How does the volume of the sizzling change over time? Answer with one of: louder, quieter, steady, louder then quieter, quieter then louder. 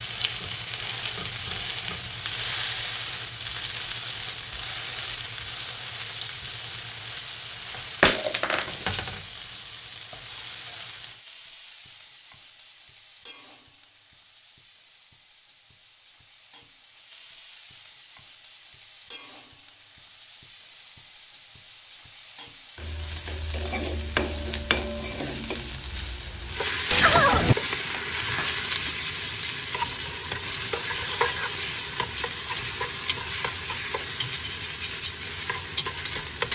quieter then louder.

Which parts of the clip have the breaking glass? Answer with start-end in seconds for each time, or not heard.
8.0-8.9, 26.9-28.9.